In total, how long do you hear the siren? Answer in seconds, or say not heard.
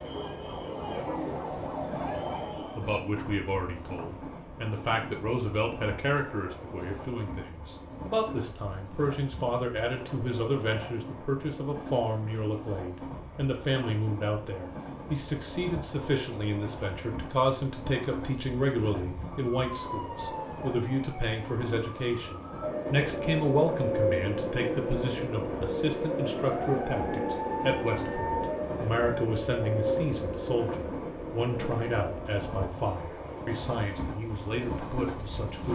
16 s.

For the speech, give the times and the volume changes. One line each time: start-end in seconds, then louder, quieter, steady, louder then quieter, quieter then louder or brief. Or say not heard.
2.8-35.7 steady.